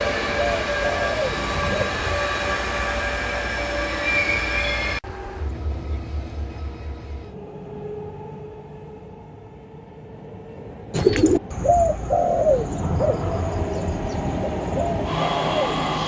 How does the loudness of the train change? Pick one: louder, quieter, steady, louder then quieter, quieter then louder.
quieter then louder.